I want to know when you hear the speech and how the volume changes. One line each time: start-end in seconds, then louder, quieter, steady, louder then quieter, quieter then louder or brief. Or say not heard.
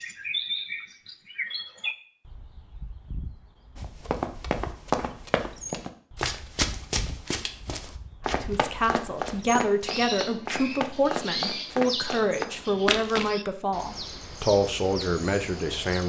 8.3-16.0 steady.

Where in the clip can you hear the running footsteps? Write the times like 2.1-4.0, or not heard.
3.8-13.3.